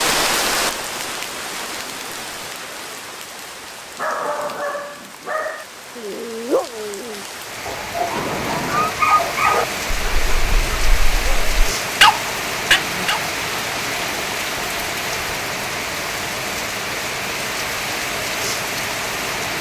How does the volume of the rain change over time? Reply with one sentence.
The volume of the rain goes down, then up.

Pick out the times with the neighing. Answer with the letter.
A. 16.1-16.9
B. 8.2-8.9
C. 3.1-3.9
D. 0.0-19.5
B.